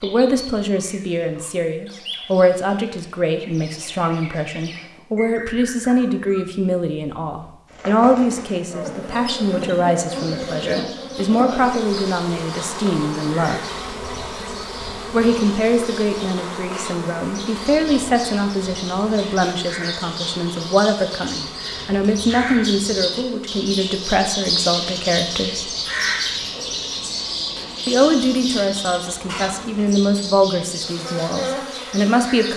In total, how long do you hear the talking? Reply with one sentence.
The talking can be heard for 29 seconds in total.